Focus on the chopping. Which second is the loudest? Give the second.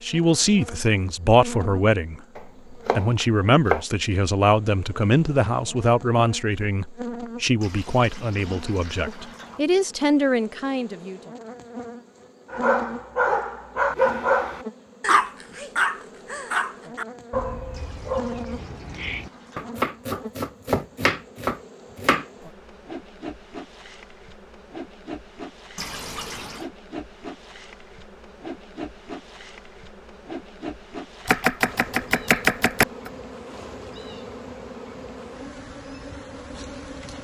32 s.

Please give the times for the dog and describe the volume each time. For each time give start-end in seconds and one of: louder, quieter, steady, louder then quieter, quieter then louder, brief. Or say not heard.
12.5-19.3 quieter.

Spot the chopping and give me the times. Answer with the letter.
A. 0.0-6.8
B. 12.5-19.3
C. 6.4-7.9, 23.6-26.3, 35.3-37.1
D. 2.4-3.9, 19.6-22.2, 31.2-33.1
D.